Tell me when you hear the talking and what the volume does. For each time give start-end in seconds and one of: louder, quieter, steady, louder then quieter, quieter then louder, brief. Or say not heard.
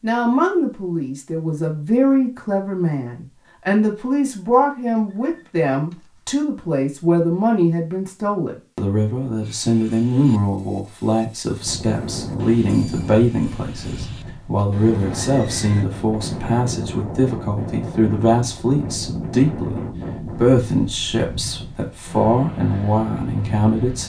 0.0-24.0 steady.